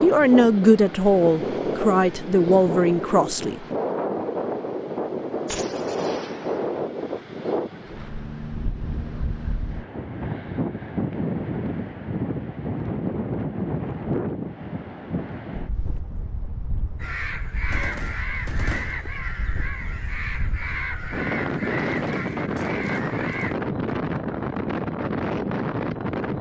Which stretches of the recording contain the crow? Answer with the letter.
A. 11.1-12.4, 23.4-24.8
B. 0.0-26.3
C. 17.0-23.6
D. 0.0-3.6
C.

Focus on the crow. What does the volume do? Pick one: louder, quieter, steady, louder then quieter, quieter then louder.
steady.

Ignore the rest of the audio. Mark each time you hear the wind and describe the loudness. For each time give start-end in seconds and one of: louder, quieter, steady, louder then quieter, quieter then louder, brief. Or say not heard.
0.0-26.3 quieter then louder.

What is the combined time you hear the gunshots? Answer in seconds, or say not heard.
3 s.